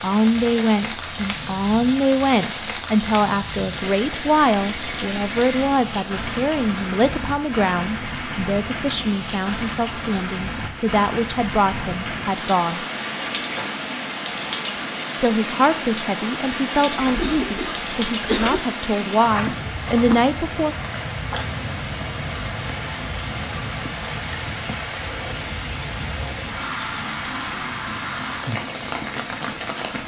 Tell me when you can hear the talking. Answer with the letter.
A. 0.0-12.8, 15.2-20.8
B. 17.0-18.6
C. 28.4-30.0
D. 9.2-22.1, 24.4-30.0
A.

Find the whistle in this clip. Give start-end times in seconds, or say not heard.
not heard.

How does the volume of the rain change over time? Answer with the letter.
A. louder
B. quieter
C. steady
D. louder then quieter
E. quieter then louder
C.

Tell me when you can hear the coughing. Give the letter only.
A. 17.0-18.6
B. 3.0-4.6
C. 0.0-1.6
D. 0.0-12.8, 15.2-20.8
A.